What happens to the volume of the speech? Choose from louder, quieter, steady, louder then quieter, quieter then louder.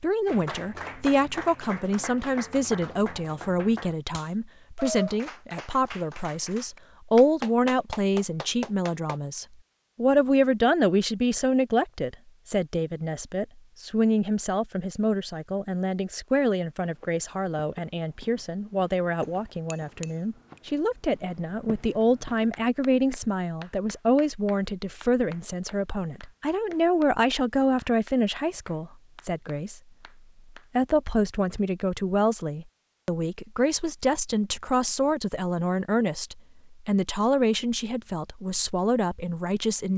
steady.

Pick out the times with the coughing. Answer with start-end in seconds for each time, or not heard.
not heard.